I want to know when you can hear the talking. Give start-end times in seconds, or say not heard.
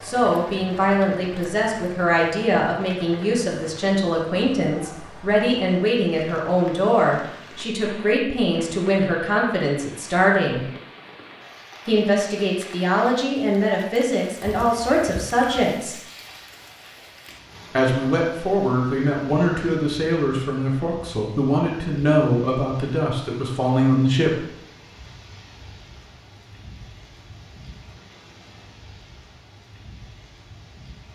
0.0-10.7, 11.8-15.9, 17.8-24.4.